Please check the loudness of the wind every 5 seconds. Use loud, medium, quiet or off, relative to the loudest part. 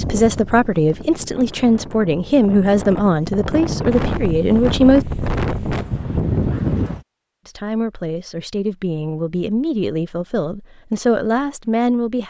medium, loud, off.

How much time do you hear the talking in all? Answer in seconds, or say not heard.
10 s.